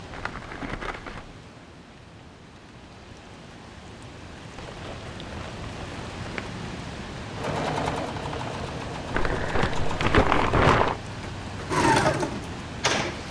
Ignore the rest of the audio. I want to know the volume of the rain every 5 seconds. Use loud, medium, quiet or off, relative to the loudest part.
medium, loud, loud.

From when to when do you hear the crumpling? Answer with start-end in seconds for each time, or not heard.
0.1-1.4, 4.5-6.6, 9.1-11.0.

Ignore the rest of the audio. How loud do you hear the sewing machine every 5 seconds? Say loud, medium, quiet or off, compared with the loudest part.
off, medium, loud.